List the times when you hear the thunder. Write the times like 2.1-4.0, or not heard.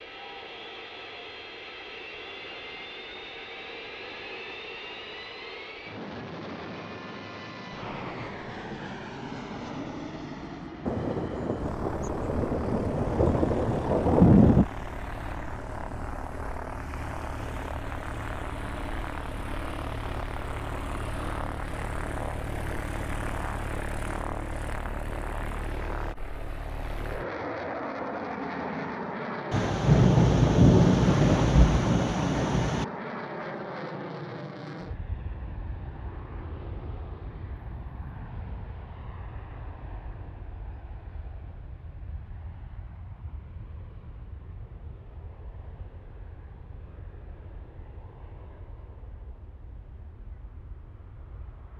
10.8-14.7, 29.5-32.9.